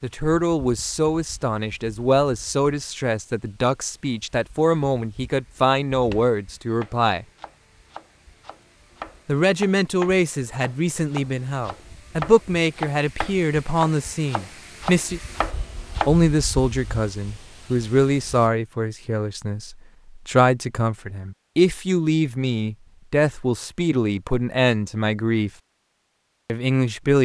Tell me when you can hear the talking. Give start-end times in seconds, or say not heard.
0.0-7.2, 9.2-15.2, 16.1-25.5, 26.4-27.2.